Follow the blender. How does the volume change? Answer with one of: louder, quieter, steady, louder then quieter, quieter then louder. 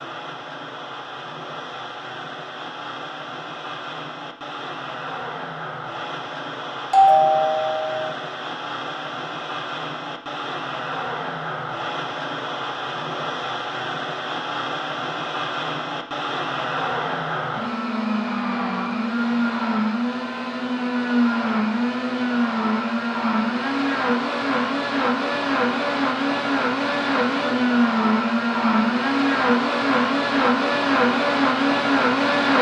louder.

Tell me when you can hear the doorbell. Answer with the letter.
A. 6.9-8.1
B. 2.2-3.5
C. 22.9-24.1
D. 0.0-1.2
A.